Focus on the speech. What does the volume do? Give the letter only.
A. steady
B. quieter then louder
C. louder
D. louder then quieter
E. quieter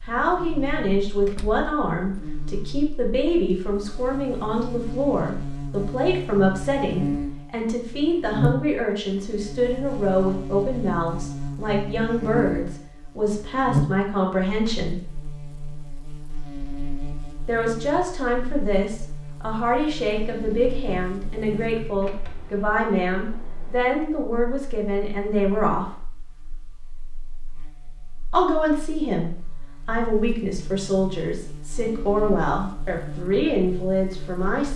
A.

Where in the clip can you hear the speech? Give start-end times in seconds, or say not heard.
0.1-15.0, 17.4-25.9, 28.3-34.7.